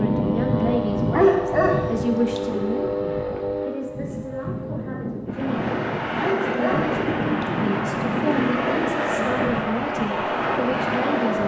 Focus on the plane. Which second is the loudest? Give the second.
1 s.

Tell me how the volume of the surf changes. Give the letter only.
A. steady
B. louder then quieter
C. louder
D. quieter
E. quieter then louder
A.